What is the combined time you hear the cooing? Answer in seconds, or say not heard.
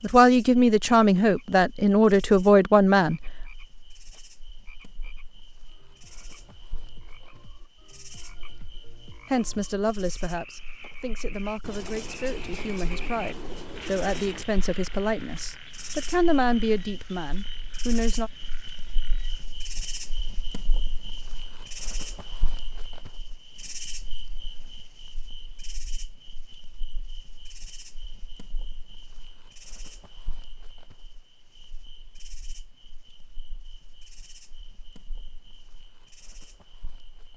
3 s.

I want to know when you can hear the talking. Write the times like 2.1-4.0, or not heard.
0.0-3.2, 9.2-18.3.